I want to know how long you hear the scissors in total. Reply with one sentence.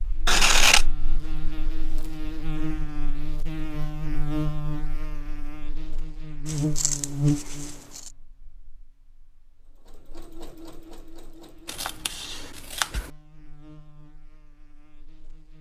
The scissors can be heard for 4 seconds in total.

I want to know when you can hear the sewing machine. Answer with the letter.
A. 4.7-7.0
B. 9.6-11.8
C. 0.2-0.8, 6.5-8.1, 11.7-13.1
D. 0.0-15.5
B.